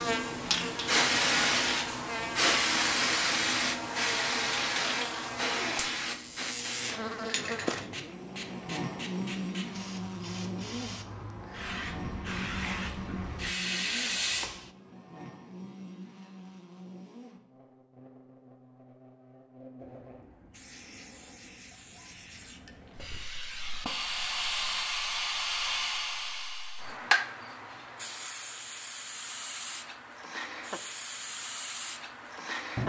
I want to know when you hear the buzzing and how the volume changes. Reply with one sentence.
You can hear the buzzing from 0.0 to 20.2 s, getting quieter.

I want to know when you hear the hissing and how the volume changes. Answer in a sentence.
The hissing can be heard from 0.0 to 14.7 s, getting quieter then louder; and from 19.8 to 32.8 s, getting louder then quieter.